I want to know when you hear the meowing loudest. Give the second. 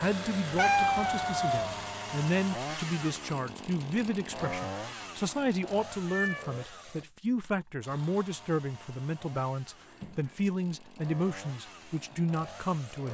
1 s.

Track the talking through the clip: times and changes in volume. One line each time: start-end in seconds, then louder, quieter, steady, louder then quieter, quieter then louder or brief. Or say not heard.
0.0-13.0 steady.